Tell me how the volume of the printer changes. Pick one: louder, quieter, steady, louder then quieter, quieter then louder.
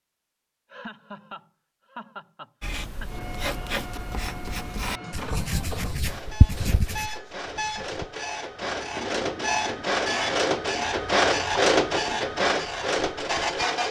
louder.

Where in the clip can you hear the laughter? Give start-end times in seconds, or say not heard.
0.7-3.2.